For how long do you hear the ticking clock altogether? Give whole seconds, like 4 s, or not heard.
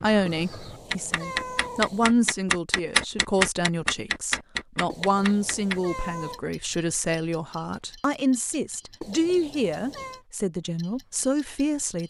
12 s.